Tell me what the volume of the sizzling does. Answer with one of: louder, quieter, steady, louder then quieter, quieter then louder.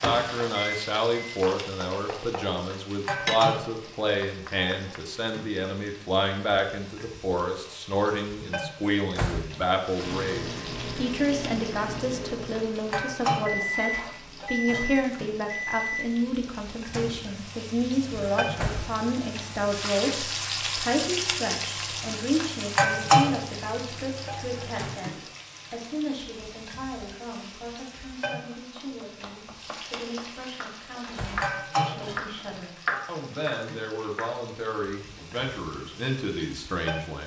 louder then quieter.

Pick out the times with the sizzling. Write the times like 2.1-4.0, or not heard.
0.0-37.2.